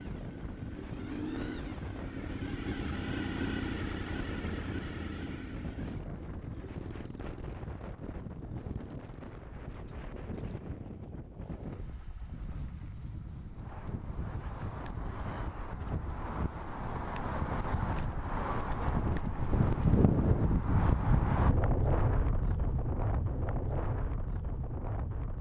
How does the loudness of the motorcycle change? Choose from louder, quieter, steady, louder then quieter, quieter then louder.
quieter.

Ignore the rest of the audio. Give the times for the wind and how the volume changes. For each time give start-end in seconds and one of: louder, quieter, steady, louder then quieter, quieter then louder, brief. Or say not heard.
0.0-25.3 louder.